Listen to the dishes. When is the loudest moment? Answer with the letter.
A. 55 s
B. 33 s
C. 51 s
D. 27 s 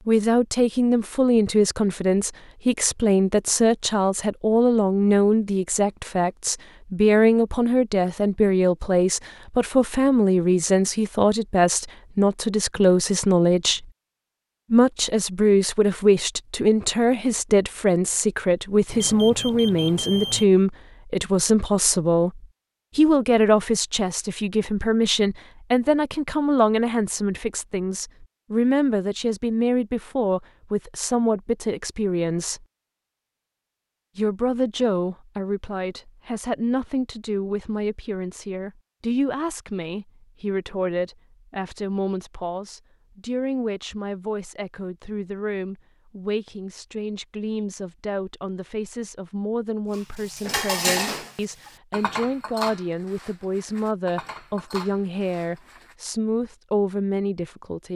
C.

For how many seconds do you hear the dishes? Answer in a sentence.
The dishes can be heard for 6 seconds in total.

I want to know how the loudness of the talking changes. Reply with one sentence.
The loudness of the talking goes down.